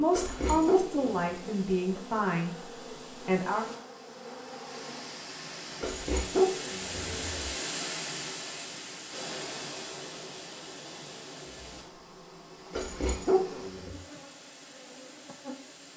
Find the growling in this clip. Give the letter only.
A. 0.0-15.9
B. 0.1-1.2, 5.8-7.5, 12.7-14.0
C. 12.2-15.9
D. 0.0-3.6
B.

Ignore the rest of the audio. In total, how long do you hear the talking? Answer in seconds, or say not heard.
4 s.